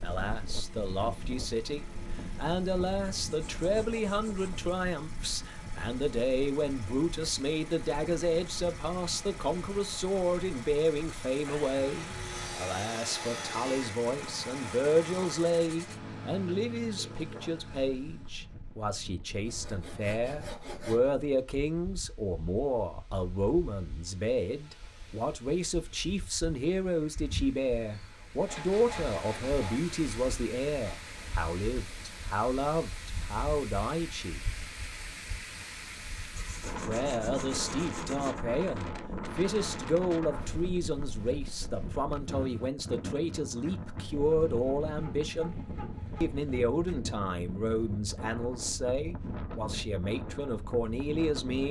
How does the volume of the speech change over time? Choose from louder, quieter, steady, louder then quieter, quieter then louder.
steady.